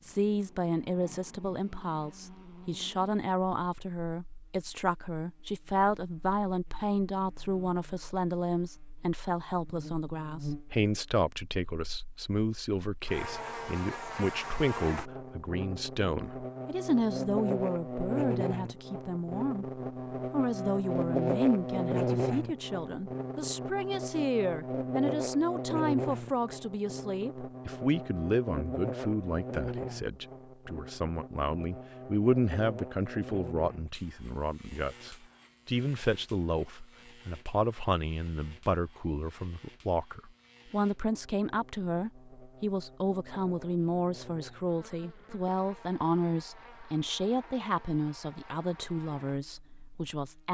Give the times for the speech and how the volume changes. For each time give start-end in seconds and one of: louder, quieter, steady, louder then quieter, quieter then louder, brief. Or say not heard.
0.0-50.4 steady.